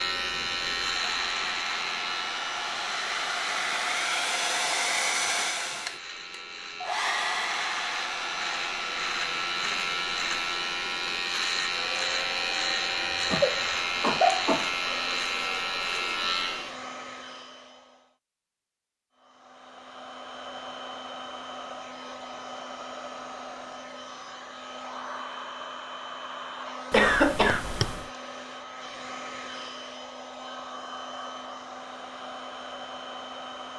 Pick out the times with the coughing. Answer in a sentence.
You can hear the coughing from 13.3 to 14.7 s and from 26.9 to 28.0 s.